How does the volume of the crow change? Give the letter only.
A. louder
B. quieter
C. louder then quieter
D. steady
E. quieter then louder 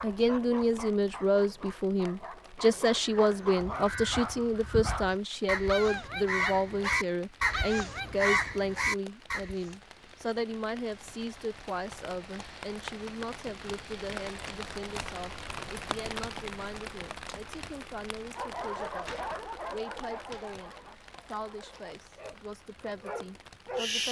A.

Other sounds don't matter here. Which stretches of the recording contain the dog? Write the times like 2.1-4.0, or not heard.
0.0-8.2, 18.4-24.0.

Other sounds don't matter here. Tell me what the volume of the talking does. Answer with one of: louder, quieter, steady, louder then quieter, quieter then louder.
quieter.